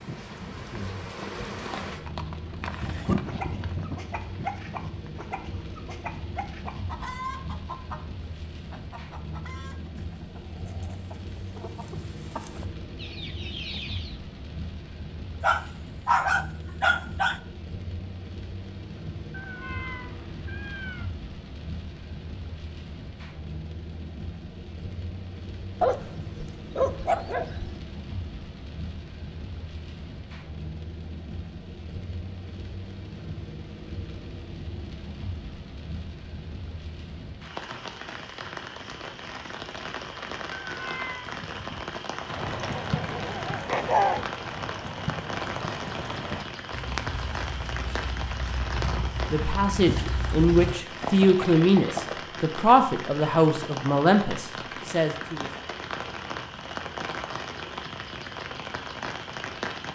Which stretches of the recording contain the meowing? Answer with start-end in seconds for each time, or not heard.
19.3-21.1, 40.6-41.3.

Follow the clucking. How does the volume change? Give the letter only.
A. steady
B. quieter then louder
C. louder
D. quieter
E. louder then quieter
B.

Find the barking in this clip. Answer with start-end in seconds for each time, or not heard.
15.4-17.4, 25.8-27.7, 42.7-44.2.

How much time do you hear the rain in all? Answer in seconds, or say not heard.
60 s.